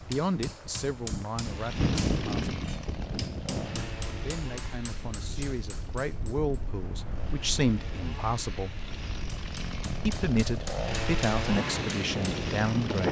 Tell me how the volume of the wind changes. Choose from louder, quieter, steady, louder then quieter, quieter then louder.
quieter then louder.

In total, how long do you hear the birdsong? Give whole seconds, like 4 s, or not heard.
not heard.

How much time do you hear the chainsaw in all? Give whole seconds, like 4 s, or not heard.
12 s.